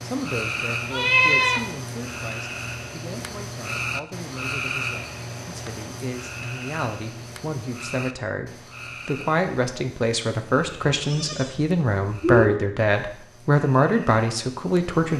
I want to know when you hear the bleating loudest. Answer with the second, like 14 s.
1 s.